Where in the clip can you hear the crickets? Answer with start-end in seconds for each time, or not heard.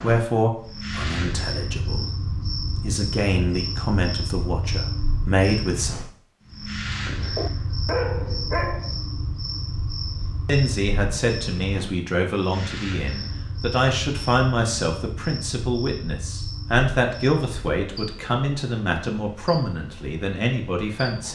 0.0-21.2.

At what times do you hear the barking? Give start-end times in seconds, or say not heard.
7.3-8.9.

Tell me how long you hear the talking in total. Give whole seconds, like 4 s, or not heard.
16 s.